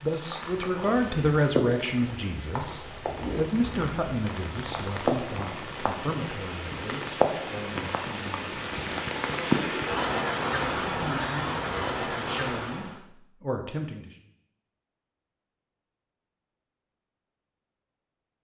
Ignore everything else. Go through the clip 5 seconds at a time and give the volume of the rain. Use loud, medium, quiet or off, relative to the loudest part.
medium, loud, loud, off.